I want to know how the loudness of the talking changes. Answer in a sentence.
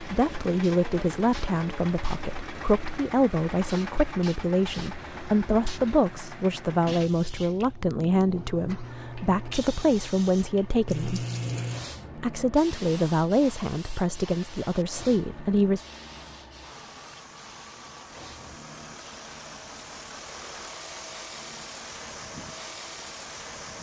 The loudness of the talking stays about the same.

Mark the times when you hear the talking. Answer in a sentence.
The talking can be heard from 0.0 to 11.2 s and from 12.2 to 15.8 s.